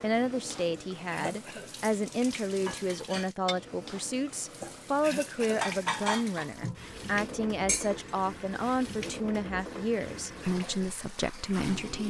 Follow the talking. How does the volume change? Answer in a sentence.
The volume of the talking stays about the same.